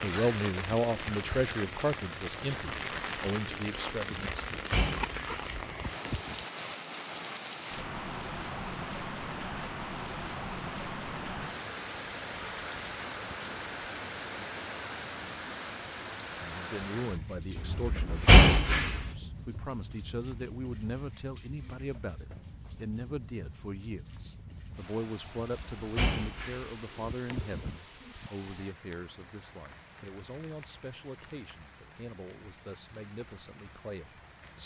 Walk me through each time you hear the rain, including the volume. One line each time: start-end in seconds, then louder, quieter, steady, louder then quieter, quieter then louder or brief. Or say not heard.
0.0-34.6 quieter.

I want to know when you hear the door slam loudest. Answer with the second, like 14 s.
18 s.